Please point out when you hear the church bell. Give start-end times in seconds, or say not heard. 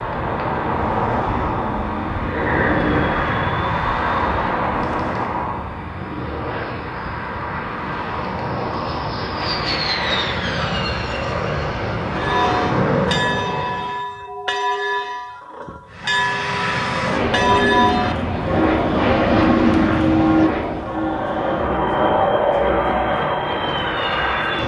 12.2-21.8.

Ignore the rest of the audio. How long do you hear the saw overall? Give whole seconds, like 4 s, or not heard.
not heard.